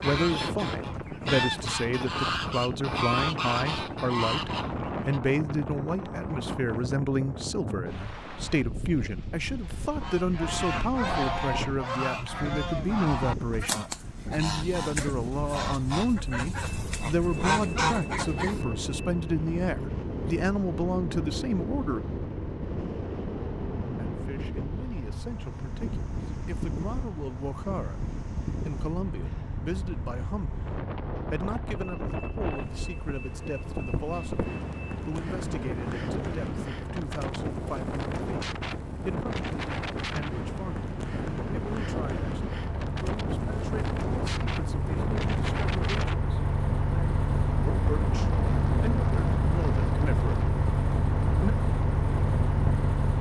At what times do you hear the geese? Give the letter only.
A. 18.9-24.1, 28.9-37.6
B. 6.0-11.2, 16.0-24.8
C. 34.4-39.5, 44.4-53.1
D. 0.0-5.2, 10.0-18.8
D.